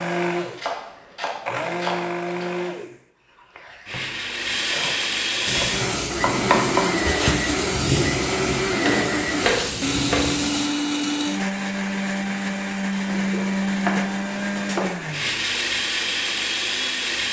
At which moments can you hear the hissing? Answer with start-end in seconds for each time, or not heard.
5.5-10.7.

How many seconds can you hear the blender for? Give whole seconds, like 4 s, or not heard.
17 s.